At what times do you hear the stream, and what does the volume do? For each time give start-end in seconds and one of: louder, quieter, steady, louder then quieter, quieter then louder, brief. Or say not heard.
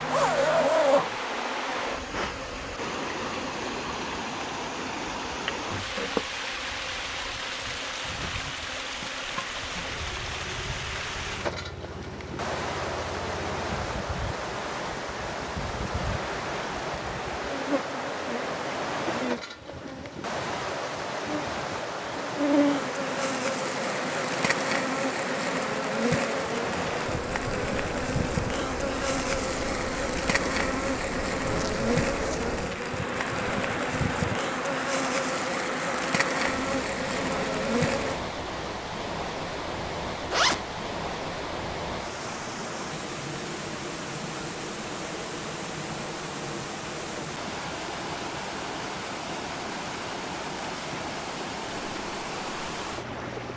0.0-53.5 steady.